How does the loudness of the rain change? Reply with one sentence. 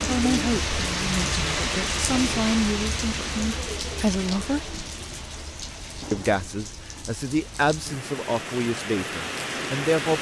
The volume of the rain goes down, then up.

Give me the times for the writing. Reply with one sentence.
The writing can't be heard in this clip.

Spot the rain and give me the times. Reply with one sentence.
The rain can be heard from 0.0 to 10.1 s.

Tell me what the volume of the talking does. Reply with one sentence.
The volume of the talking stays about the same.